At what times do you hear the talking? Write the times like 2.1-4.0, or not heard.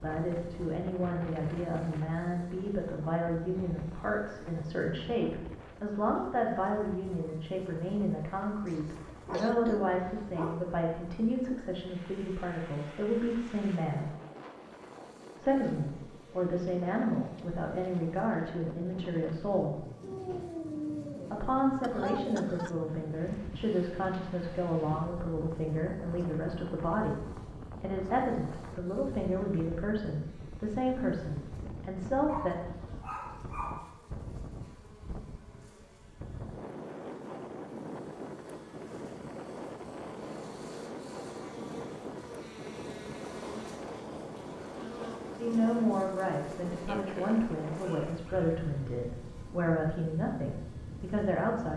0.0-14.1, 15.4-19.9, 21.3-27.2, 27.8-32.5, 45.4-51.7.